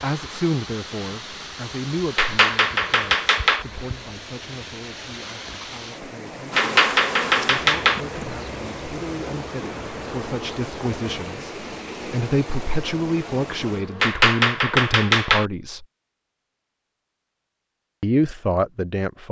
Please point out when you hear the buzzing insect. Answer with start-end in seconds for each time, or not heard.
6.5-14.2.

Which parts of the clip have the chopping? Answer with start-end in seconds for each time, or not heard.
2.1-3.6, 6.5-8.0, 14.0-15.4.